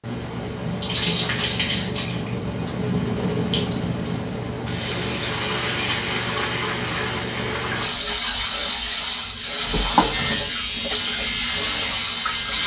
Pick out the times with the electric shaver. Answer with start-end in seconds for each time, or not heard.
10.1-12.6.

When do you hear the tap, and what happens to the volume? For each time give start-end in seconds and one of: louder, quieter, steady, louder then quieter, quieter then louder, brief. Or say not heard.
0.0-12.6 steady.